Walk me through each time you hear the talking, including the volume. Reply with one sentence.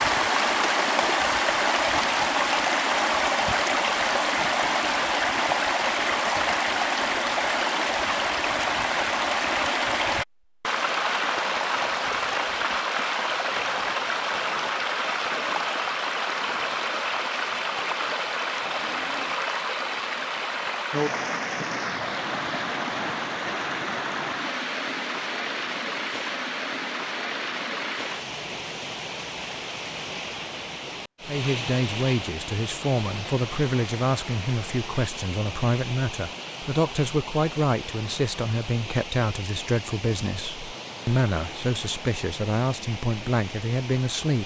The talking can be heard from 31.2 to 44.4 s, at a steady volume.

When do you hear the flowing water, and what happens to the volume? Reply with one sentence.
You can hear the flowing water from 0.0 to 44.4 s, getting quieter.